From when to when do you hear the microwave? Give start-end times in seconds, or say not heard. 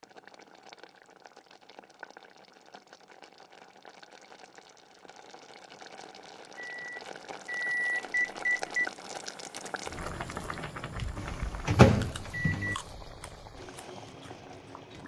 6.5-8.9, 11.2-12.8.